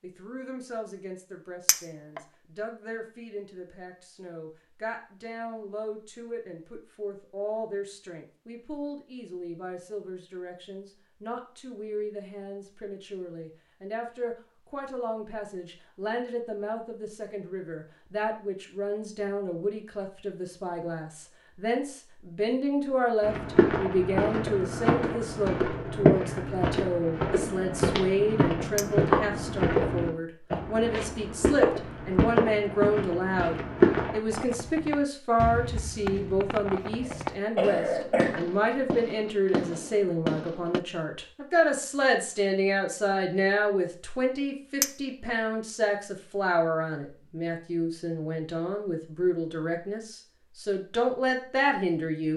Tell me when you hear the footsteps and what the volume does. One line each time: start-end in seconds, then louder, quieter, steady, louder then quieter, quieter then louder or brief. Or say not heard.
23.2-34.2 steady.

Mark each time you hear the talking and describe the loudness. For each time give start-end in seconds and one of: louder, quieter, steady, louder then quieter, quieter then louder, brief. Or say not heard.
0.0-52.3 louder.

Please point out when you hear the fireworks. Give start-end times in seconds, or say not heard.
34.2-40.8.